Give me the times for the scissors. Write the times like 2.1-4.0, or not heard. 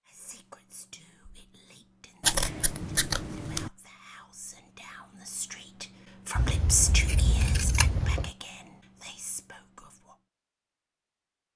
2.2-3.7, 6.3-8.3.